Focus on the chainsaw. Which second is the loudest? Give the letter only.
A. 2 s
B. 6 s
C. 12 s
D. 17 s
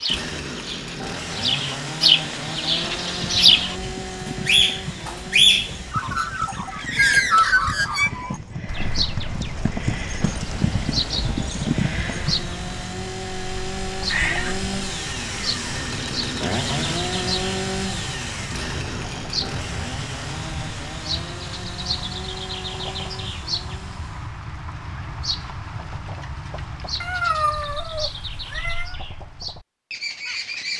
D.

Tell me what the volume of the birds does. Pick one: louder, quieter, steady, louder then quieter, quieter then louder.
quieter.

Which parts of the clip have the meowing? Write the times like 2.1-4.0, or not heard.
7.0-7.9, 13.9-14.7, 27.0-28.9.